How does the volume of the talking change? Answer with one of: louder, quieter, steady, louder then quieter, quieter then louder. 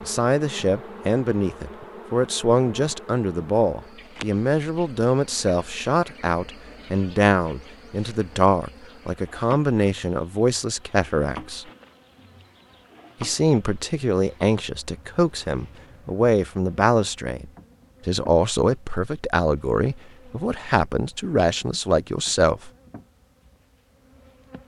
steady.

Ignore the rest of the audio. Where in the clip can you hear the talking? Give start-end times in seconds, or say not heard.
0.0-11.7, 13.2-22.7.